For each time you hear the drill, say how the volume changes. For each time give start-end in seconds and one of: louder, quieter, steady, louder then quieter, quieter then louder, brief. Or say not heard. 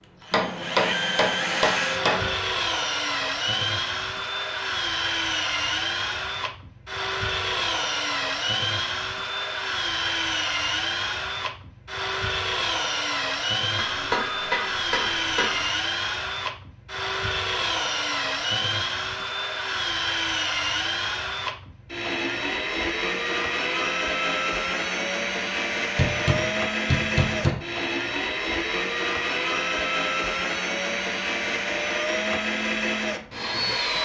0.2-34.0 steady.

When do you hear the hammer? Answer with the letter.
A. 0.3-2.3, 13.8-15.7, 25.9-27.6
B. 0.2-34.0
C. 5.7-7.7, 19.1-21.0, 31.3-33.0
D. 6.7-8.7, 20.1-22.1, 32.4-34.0
A.